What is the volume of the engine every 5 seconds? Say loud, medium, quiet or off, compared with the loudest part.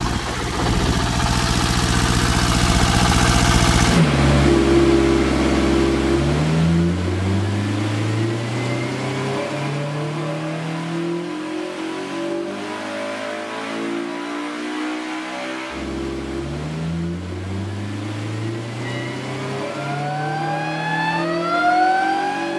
loud, loud, medium, medium, medium.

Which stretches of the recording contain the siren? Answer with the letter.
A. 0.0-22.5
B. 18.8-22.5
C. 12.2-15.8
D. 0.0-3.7
B.